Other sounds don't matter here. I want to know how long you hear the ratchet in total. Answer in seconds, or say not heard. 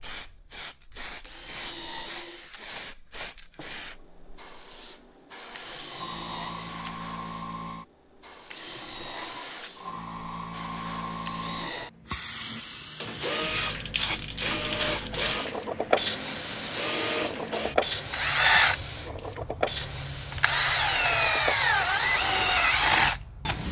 not heard.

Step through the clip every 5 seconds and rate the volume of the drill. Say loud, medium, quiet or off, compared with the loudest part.
quiet, quiet, medium, loud, loud.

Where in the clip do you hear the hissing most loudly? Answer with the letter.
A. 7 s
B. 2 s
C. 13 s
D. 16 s
D.